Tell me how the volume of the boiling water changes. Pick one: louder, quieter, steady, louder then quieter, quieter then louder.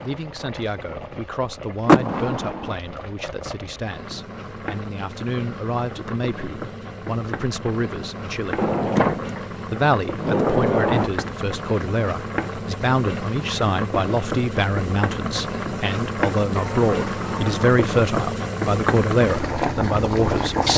louder.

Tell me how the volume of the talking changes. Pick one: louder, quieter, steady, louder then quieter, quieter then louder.
louder.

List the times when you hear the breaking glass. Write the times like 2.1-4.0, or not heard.
not heard.